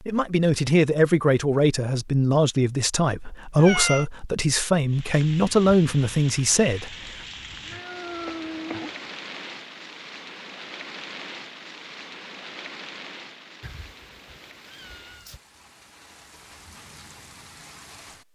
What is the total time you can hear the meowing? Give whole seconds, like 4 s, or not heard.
4 s.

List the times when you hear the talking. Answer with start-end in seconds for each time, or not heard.
0.1-7.0.